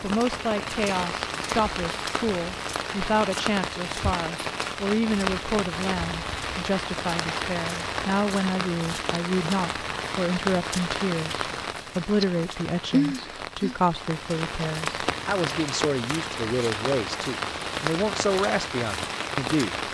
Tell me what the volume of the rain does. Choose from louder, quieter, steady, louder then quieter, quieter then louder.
steady.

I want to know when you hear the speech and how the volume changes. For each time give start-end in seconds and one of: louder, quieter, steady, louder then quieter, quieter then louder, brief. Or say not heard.
0.0-19.8 steady.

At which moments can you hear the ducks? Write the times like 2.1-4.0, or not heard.
not heard.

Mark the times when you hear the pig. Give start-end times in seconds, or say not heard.
not heard.